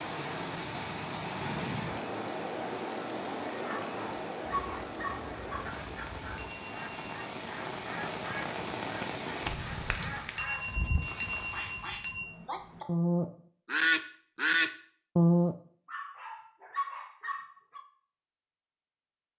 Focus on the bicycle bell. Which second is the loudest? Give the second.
11 s.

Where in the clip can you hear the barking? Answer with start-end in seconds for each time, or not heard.
3.6-5.7, 15.8-17.8.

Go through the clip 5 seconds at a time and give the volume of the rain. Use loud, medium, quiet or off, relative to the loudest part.
loud, loud, medium, off.